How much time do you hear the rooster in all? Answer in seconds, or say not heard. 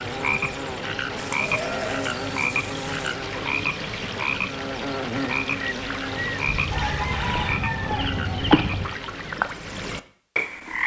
2 s.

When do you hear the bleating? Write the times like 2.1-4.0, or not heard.
1.1-3.1, 6.5-8.9.